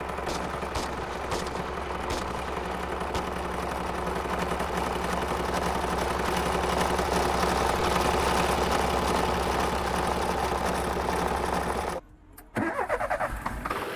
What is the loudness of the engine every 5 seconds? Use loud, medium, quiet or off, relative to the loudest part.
medium, loud, loud.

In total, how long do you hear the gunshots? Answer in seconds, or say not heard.
3 s.